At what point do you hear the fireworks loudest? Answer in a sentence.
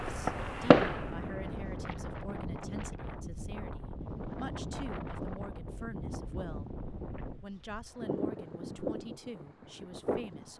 The volume of the fireworks peaks at 1 second.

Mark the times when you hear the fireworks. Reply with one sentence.
You can hear the fireworks from 0.0 to 2.2 s.